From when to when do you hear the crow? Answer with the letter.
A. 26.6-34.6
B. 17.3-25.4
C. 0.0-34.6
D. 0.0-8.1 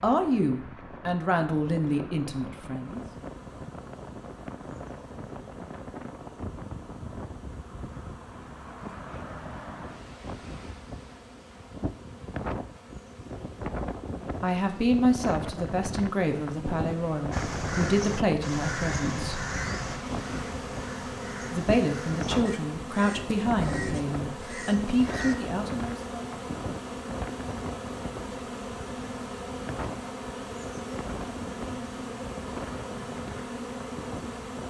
B.